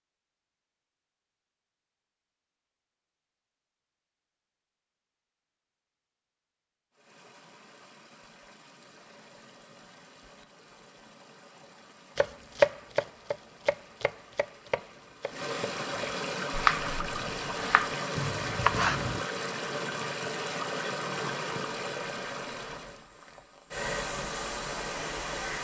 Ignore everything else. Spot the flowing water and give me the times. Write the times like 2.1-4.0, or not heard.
6.9-25.5.